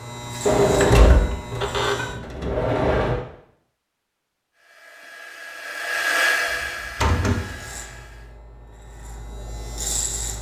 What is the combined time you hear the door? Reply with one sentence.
You can hear the door for 4 seconds altogether.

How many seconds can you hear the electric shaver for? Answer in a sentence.
The electric shaver can be heard for 5 seconds in total.